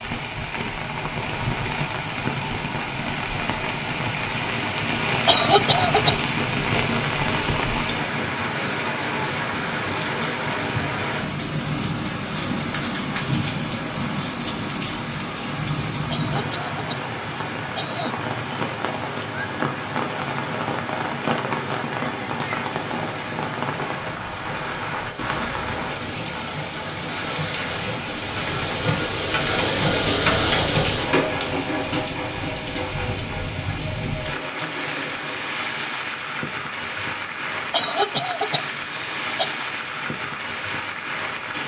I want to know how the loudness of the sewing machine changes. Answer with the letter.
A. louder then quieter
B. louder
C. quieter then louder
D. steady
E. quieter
A.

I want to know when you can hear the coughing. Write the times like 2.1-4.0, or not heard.
5.2-6.2, 16.1-18.1, 37.7-39.5.